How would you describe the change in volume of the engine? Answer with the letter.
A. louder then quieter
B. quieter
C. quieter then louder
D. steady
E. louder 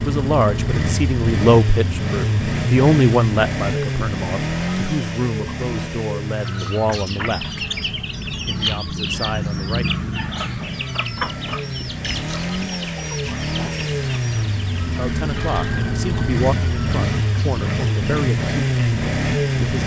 C.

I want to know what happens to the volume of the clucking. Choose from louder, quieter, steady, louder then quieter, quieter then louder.
quieter.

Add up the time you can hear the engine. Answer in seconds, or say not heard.
20 s.